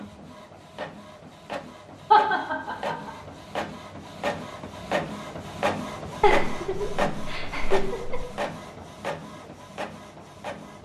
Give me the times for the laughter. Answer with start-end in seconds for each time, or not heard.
2.1-3.1, 6.2-8.2.